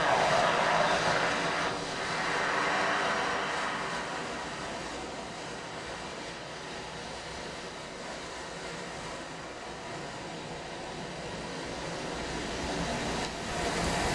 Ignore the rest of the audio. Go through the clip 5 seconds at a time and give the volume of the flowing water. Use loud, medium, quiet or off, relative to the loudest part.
loud, medium, loud.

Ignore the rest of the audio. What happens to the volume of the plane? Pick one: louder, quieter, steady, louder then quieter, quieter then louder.
quieter.